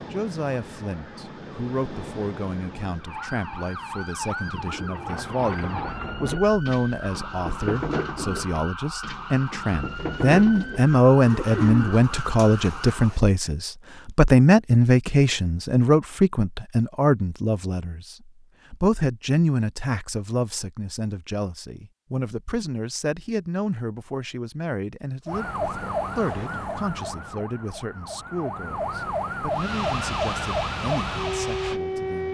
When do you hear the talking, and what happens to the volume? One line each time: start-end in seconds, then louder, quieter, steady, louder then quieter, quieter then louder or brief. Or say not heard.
0.0-32.2 louder then quieter.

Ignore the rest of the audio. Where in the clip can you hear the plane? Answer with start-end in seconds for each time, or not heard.
0.0-3.2, 29.5-32.2.